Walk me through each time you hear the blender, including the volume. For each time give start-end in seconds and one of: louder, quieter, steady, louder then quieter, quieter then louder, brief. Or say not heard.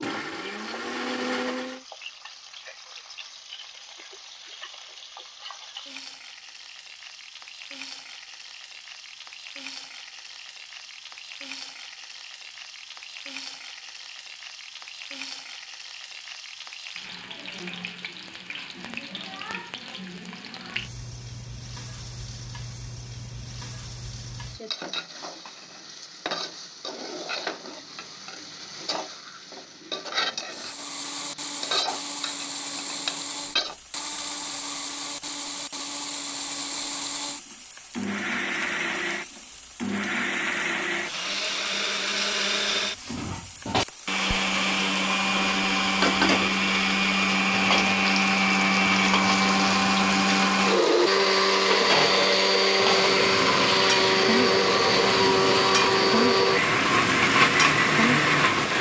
0.0-1.8 brief
30.5-58.7 louder.